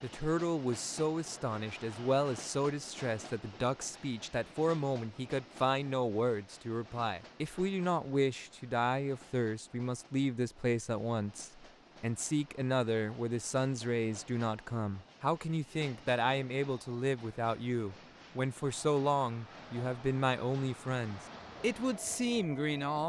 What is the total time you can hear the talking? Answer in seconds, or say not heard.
23 s.